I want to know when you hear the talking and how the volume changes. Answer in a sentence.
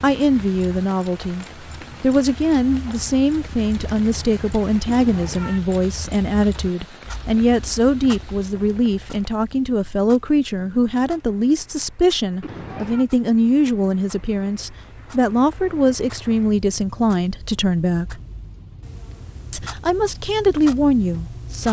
The talking can be heard from 0.0 to 18.2 s, at a steady volume; and briefly from 19.5 to 21.6 s.